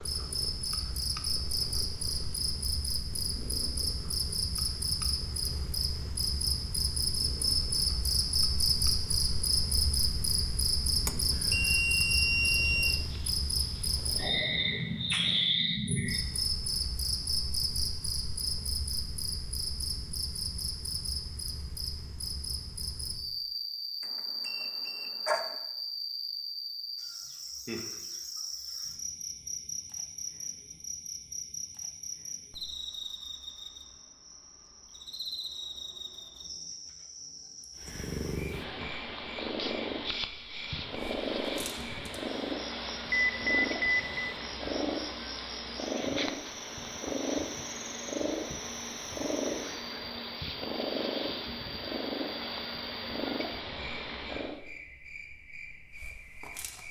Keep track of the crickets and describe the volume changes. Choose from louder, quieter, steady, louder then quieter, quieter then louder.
quieter.